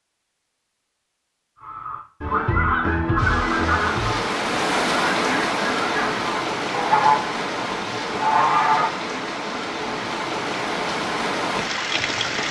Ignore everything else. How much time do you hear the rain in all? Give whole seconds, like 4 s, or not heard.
9 s.